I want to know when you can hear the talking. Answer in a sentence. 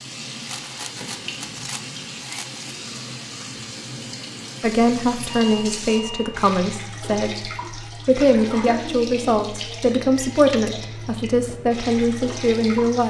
You can hear the talking from 4.6 to 13.0 s.